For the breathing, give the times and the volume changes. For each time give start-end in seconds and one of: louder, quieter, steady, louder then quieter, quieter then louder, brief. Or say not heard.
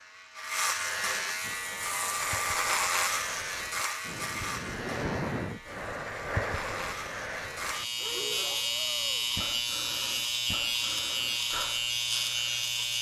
1.4-12.7 louder then quieter.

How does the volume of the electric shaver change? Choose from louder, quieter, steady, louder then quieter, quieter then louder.
quieter then louder.